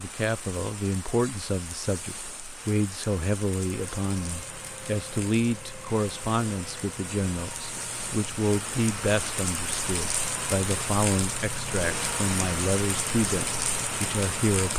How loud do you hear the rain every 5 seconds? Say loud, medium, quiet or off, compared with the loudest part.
medium, medium, loud.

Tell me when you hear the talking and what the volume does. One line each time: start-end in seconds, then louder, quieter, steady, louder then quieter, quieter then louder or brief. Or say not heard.
0.0-14.7 steady.